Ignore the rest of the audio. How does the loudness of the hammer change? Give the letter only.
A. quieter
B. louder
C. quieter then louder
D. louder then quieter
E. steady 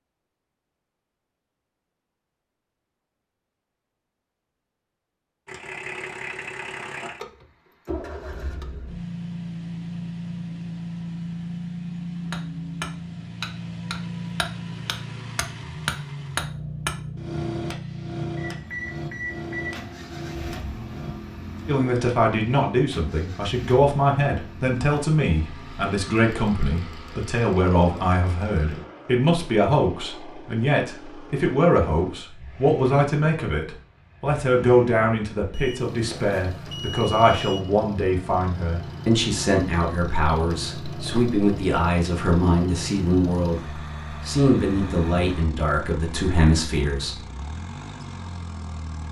A.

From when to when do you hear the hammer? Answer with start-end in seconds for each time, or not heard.
12.3-22.8.